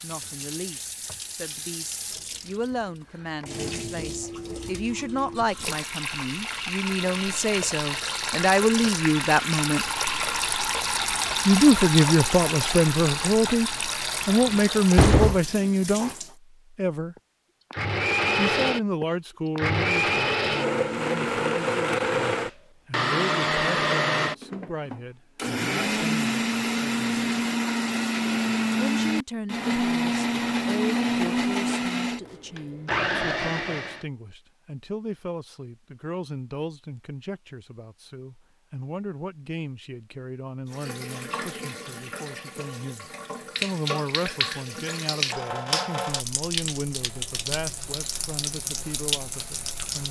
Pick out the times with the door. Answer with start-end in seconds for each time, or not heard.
14.2-15.4.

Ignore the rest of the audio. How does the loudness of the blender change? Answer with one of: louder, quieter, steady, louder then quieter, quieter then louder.
steady.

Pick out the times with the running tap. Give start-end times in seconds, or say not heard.
0.0-16.4, 40.7-50.0.